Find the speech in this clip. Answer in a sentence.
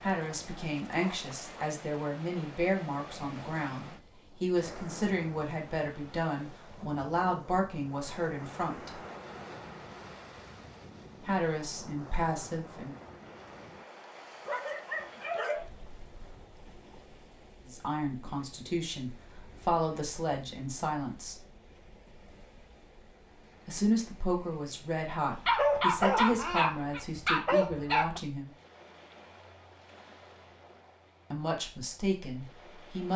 You can hear the speech from 0.0 to 8.9 s, from 11.2 to 12.9 s, from 17.6 to 21.4 s, from 23.6 to 28.5 s and from 31.3 to 33.1 s.